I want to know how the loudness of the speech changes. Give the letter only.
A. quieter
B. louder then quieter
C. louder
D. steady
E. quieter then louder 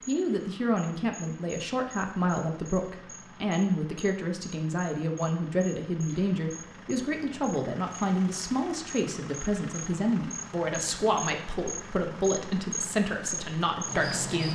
D.